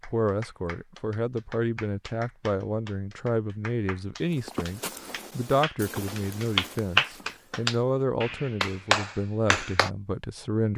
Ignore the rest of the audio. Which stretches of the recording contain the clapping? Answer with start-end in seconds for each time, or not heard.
0.0-9.9.